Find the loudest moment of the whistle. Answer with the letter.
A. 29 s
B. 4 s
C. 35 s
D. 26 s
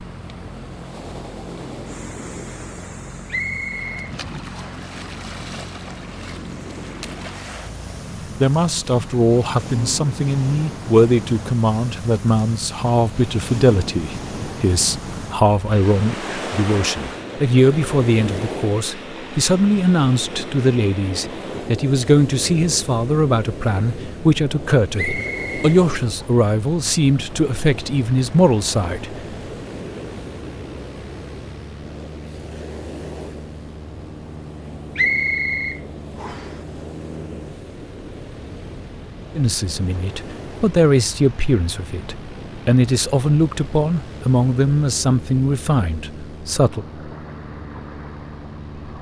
C.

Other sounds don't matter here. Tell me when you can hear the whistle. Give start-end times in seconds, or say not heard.
3.3-4.8, 24.9-26.2, 35.0-36.5.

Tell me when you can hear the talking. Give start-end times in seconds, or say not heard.
8.4-29.2, 39.4-46.9.